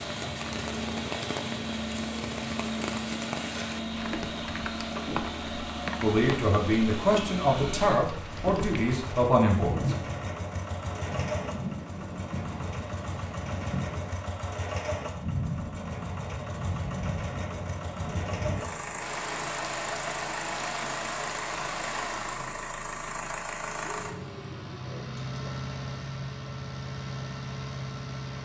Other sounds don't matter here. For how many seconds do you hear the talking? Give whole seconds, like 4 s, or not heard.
4 s.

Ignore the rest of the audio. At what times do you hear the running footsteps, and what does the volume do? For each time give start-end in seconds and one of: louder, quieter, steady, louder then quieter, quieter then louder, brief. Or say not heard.
not heard.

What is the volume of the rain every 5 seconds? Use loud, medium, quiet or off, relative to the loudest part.
loud, loud, loud, loud, loud, off.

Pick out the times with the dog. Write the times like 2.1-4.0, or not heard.
23.8-25.6.